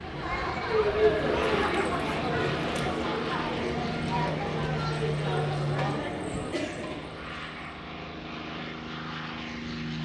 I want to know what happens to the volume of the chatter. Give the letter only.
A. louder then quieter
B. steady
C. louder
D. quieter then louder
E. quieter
E.